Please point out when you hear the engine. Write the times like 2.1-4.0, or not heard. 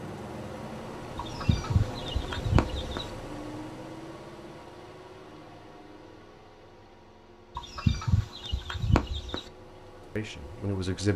0.0-11.1.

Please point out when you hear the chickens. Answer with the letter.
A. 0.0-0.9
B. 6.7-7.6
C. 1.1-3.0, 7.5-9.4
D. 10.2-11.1
C.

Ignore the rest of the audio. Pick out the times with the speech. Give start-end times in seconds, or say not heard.
10.2-11.1.